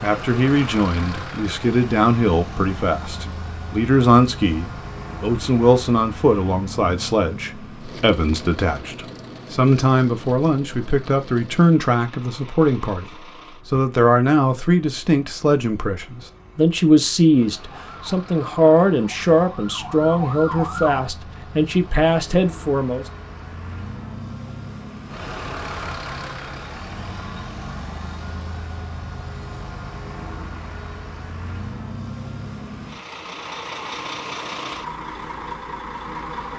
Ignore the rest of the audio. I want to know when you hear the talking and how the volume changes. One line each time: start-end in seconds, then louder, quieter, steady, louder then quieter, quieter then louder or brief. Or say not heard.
0.0-23.1 steady.